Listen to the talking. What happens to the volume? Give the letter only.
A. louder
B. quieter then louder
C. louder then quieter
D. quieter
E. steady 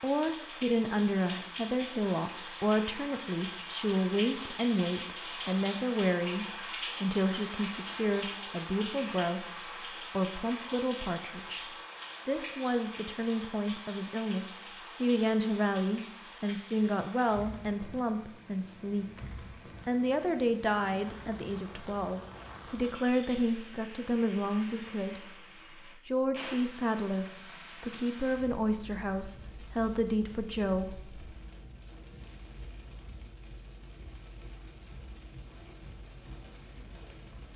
E.